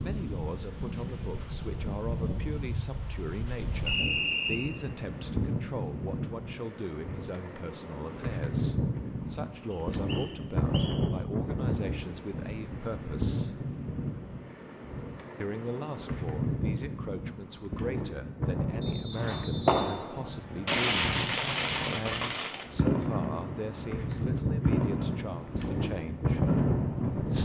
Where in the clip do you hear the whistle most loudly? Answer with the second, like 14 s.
4 s.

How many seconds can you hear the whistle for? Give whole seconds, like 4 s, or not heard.
4 s.